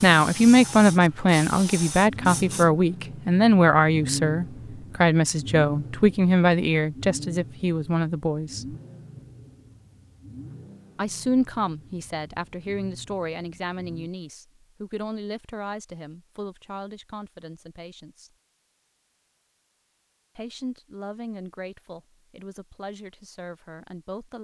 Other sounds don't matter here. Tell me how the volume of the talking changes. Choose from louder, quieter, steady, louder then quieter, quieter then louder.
quieter.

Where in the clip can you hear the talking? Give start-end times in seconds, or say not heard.
0.0-8.8, 10.9-18.3, 20.4-24.3.